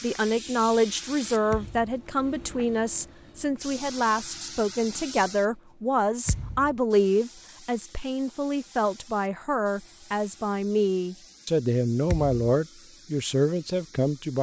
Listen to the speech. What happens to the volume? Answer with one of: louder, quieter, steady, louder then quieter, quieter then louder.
steady.